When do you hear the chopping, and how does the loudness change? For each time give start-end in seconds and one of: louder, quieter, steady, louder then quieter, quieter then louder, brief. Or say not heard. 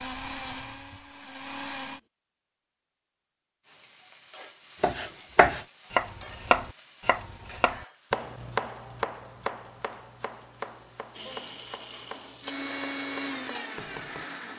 4.8-14.2 quieter.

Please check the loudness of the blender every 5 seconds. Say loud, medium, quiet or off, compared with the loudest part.
loud, off, loud.